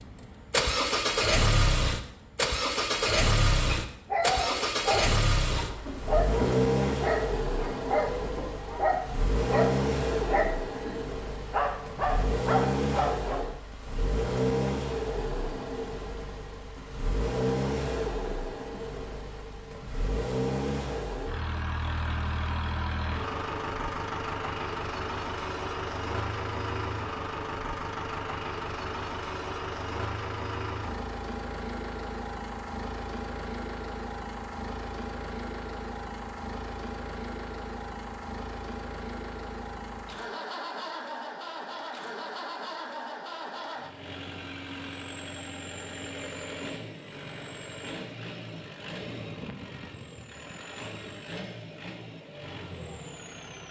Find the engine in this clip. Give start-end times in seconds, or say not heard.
0.0-53.6.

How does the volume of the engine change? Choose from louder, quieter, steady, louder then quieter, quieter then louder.
quieter.